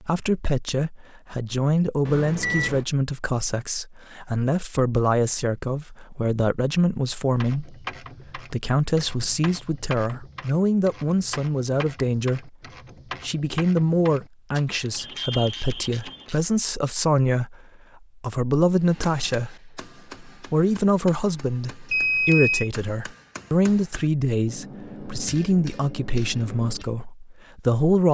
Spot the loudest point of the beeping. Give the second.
22 s.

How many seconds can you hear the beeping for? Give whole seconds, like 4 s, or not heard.
3 s.